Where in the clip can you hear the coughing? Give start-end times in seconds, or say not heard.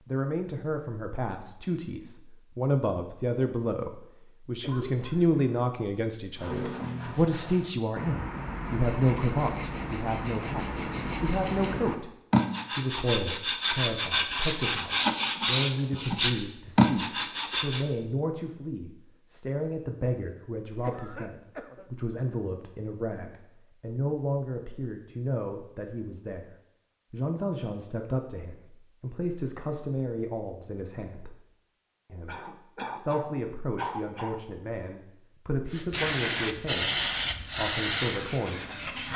4.6-5.5, 20.8-21.9, 32.2-34.4.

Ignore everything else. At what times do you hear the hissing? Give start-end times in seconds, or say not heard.
35.6-39.1.